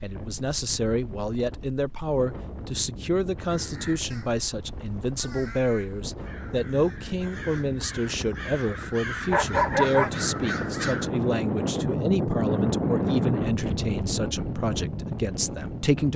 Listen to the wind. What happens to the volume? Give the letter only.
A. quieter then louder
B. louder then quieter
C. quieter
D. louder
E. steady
D.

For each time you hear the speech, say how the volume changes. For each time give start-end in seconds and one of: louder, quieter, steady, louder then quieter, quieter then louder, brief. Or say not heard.
0.0-16.1 steady.